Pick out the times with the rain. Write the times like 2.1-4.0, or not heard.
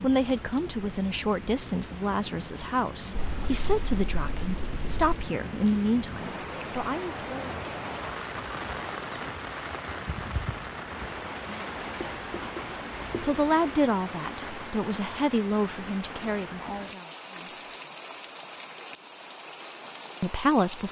0.0-20.8.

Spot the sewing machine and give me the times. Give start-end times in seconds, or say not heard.
not heard.